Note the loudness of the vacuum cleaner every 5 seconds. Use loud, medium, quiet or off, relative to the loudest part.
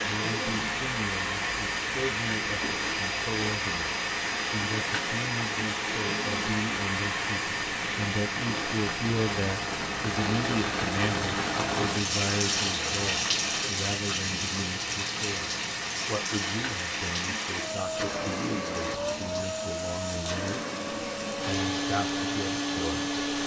loud, loud, medium, loud, loud.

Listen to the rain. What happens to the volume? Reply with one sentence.
The loudness of the rain goes up, then down.